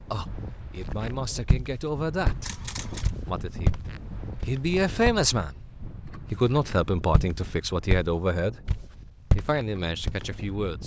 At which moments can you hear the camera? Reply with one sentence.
You can hear the camera from 2.4 to 3.1 s.